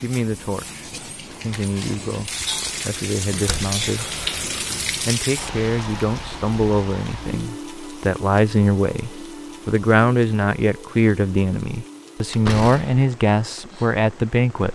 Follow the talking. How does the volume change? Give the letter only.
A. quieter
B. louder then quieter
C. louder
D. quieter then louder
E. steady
C.